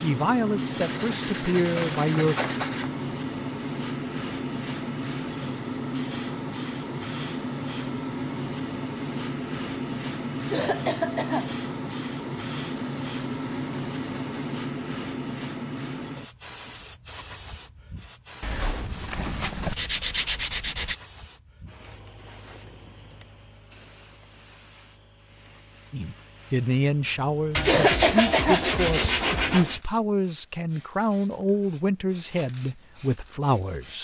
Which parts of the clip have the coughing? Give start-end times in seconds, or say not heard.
10.5-11.5, 27.6-28.6.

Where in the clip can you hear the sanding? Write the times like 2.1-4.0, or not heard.
0.8-2.9, 12.8-14.4, 18.4-20.9, 27.5-29.8.